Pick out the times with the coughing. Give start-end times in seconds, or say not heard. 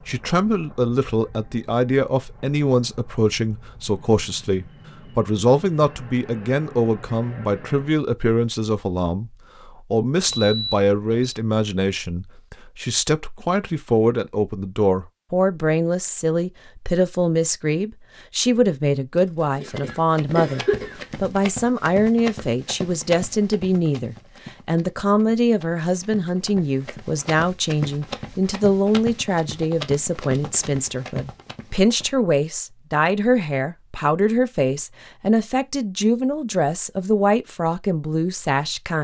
19.1-20.9.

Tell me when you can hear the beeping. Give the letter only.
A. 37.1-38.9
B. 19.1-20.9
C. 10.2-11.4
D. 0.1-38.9
C.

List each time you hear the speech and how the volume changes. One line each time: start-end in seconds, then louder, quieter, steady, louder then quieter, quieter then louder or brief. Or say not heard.
0.1-38.9 steady.